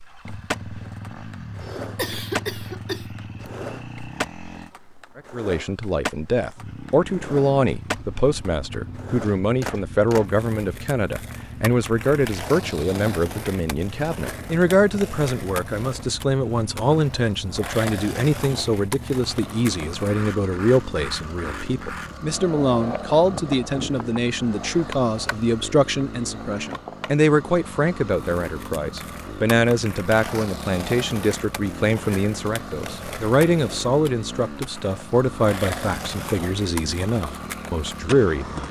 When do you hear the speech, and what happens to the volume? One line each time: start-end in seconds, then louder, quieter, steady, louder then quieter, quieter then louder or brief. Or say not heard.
5.2-38.6 steady.